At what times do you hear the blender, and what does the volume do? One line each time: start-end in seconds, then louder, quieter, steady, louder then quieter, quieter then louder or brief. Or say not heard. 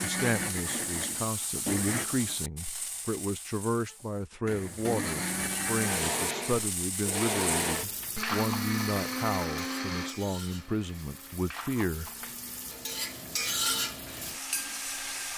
0.0-2.0 brief
4.5-15.3 quieter.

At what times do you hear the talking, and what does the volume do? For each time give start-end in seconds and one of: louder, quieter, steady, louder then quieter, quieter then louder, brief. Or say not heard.
0.0-12.1 steady.